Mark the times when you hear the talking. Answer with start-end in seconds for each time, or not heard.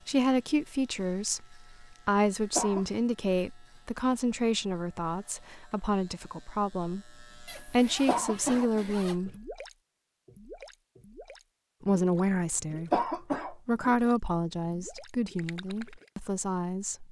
0.1-9.3, 11.8-17.0.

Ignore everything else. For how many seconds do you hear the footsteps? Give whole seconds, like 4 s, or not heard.
not heard.